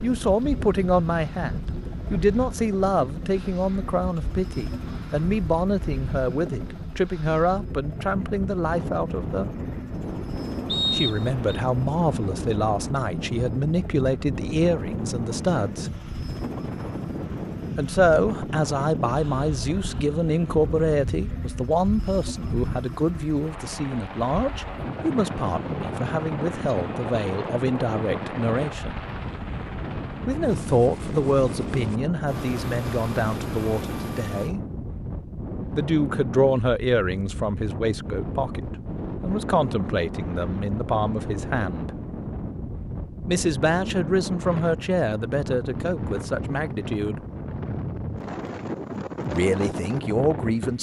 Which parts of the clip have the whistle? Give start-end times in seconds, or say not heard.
10.7-11.6.